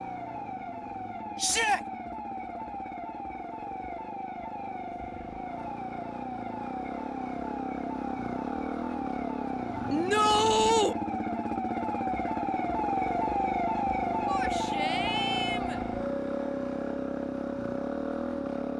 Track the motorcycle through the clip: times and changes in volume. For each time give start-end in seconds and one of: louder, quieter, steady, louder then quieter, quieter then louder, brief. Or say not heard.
0.0-18.7 louder.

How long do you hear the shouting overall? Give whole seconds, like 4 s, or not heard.
3 s.